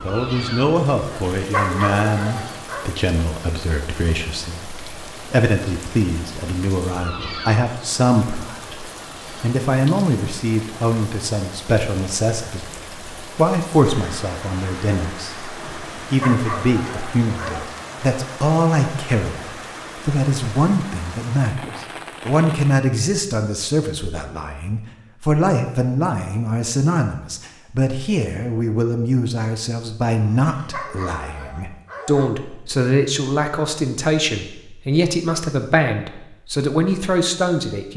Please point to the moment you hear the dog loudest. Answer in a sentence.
The volume of the dog peaks at 2 seconds.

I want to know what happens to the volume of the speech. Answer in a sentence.
The volume of the speech stays about the same.